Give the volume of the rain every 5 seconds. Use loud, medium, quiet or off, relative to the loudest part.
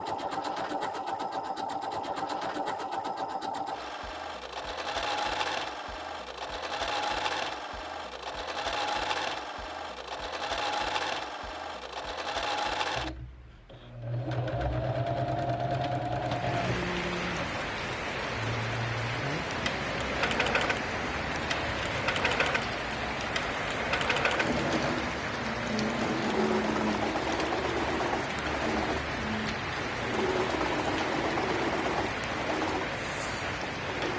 off, off, off, loud, loud, loud, loud.